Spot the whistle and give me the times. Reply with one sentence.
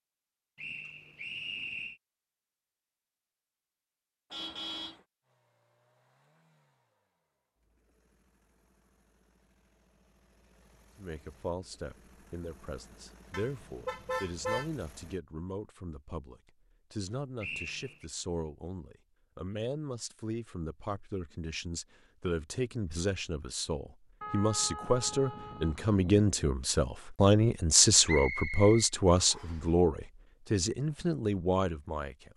The whistle can be heard from 0.6 to 2.0 s, from 17.4 to 18.1 s and from 28.1 to 29.6 s.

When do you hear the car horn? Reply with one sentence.
You can hear the car horn from 4.3 to 5.0 s, from 13.3 to 14.7 s and from 24.2 to 26.3 s.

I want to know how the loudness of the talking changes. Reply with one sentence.
The volume of the talking goes up.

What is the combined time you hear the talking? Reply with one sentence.
The talking can be heard for 21 seconds in total.